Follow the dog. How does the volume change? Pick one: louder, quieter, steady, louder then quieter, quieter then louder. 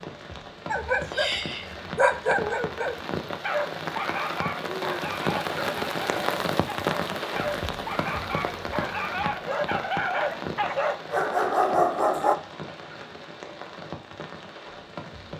quieter then louder.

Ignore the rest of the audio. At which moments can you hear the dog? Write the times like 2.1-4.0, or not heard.
0.7-12.3.